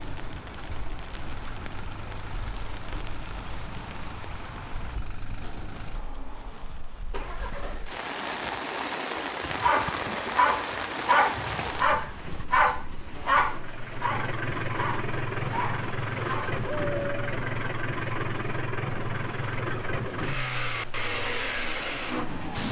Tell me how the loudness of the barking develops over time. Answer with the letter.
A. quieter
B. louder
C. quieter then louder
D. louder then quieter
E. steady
A.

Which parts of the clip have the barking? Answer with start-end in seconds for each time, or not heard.
9.6-17.4.